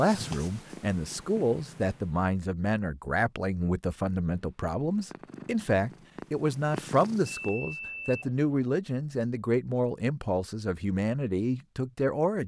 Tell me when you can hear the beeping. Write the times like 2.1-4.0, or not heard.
7.3-8.7.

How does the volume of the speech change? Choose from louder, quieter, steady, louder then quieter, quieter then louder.
steady.